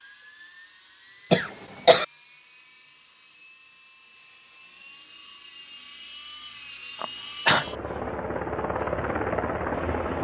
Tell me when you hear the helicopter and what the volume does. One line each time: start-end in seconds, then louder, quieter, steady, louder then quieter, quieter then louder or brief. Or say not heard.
0.0-10.1 louder.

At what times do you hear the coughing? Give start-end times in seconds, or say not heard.
1.3-2.0, 7.0-7.7.